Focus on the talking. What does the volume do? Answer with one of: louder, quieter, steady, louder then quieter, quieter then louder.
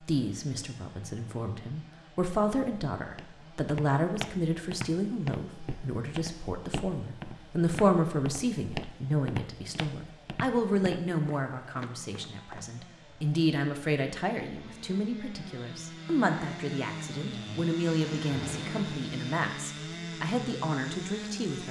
steady.